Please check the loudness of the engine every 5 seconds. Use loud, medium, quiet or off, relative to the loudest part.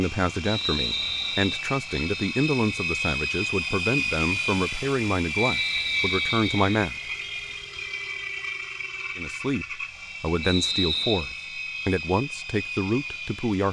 loud, loud, medium.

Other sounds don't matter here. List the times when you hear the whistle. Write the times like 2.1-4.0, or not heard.
0.5-1.6, 5.4-6.8, 10.4-11.2.